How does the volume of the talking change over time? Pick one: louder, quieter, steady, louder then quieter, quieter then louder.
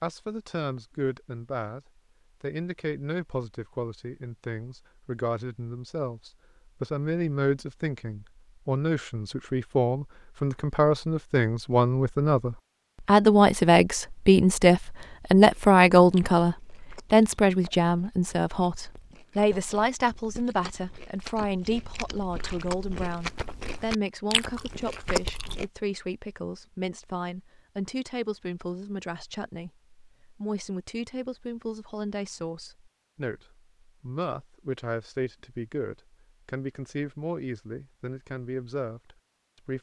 louder then quieter.